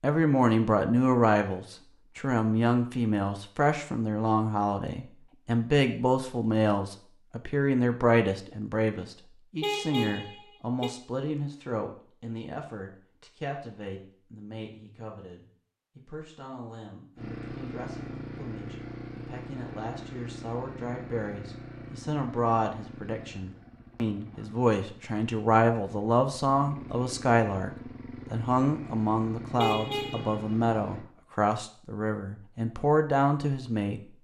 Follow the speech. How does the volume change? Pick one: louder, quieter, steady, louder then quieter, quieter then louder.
quieter then louder.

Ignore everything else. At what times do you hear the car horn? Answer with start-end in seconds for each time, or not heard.
9.6-10.9, 29.6-30.4.